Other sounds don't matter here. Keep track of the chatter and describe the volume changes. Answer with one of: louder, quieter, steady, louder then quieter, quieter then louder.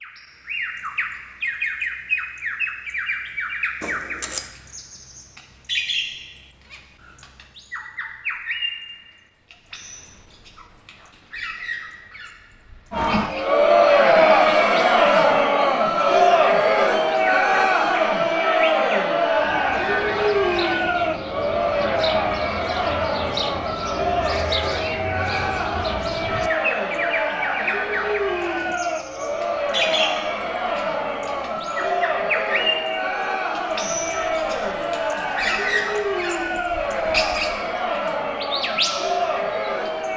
quieter.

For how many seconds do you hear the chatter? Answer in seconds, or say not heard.
27 s.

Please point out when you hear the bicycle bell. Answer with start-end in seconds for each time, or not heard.
3.8-4.5.